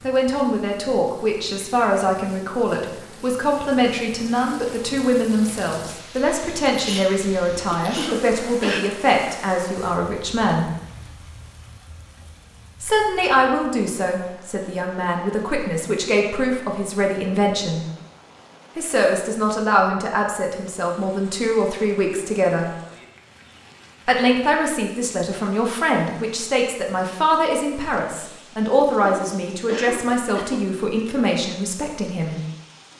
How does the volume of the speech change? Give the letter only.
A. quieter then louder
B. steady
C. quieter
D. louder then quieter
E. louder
B.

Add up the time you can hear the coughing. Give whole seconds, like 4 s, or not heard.
3 s.